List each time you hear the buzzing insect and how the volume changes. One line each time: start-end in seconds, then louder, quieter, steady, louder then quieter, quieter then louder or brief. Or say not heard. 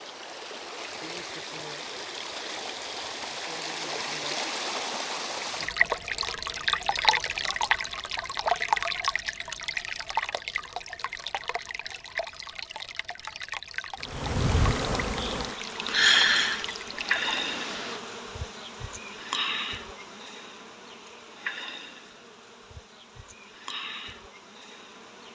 14.0-25.2 quieter.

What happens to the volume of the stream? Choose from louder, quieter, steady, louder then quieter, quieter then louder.
louder then quieter.